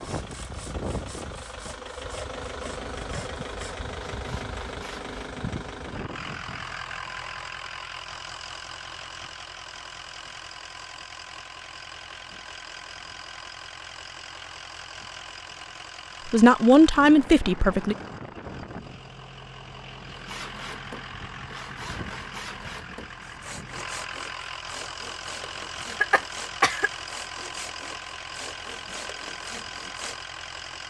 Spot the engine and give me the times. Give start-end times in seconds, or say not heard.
0.0-30.8.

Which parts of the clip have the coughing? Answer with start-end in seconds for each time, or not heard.
25.9-26.9.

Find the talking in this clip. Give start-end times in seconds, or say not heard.
16.2-17.9.